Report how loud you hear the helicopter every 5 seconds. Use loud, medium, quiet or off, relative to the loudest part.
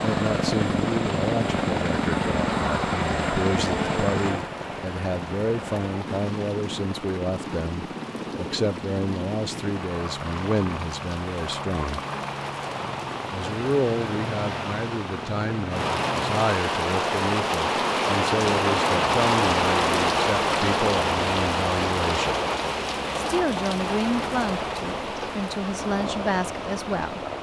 loud, medium, medium, medium, medium, medium.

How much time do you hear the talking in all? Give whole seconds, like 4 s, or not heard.
25 s.